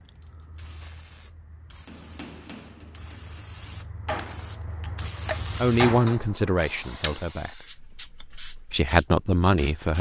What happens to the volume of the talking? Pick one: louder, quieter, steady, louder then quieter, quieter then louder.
quieter then louder.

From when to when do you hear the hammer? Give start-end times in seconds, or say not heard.
1.9-7.2.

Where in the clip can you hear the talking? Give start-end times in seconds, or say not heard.
5.5-9.9.